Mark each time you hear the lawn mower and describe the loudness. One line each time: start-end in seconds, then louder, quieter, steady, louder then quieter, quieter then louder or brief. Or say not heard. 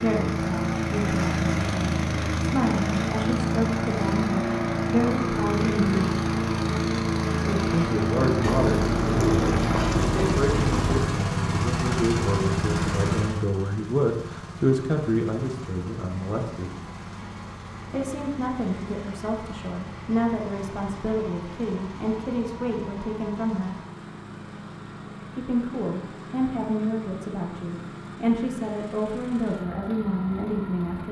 0.0-31.0 quieter.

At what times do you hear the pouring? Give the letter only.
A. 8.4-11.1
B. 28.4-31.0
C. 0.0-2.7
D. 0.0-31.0
A.